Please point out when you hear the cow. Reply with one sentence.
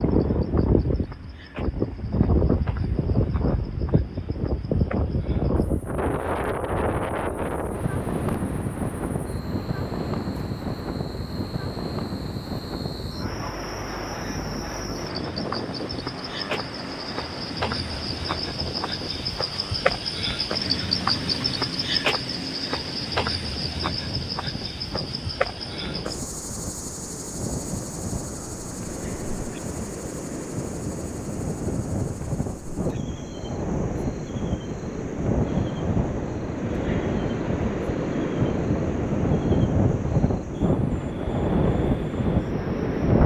The cow can't be heard in this clip.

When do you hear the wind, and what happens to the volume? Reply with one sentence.
The wind can be heard from 0.0 to 43.2 s, getting quieter then louder.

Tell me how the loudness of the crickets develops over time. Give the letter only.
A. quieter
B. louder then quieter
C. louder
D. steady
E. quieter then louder
B.